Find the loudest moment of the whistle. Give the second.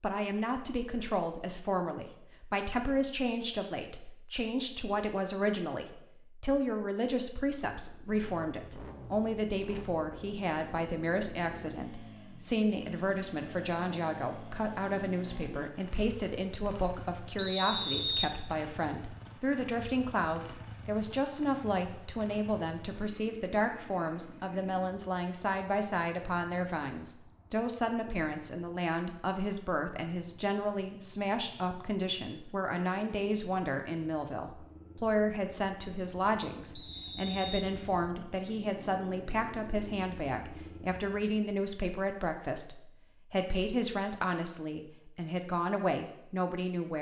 18 s.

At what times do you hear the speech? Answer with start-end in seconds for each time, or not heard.
0.0-46.9.